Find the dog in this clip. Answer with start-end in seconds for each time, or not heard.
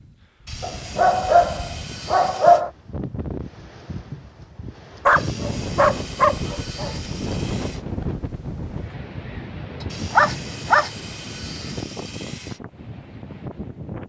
0.6-2.7, 5.0-7.0, 10.2-10.9.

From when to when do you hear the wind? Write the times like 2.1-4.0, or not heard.
0.0-14.0.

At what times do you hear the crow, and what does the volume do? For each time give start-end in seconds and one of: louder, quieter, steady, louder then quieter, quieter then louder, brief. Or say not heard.
not heard.